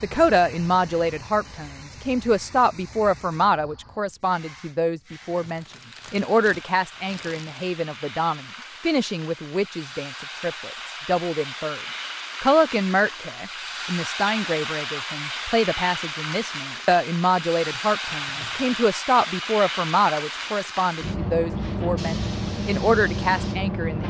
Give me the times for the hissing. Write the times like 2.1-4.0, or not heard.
0.0-24.0.